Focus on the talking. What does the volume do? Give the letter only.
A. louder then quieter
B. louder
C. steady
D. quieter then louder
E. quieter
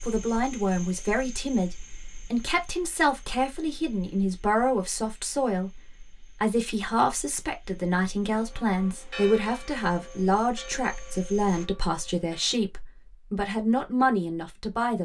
C.